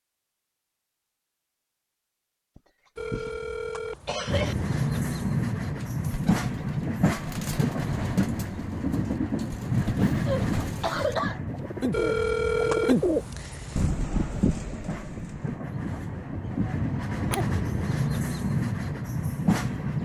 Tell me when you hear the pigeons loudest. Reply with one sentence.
The loudest moment of the pigeons is at 13 seconds.